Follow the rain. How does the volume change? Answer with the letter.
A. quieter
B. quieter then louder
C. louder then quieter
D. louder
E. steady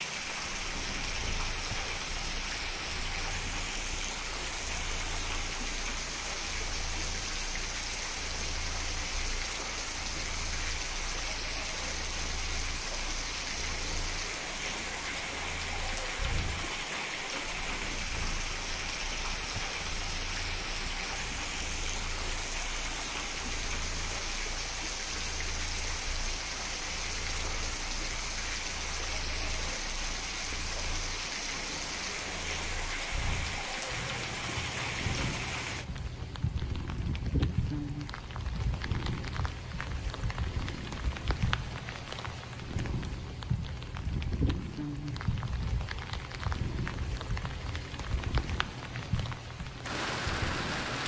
E.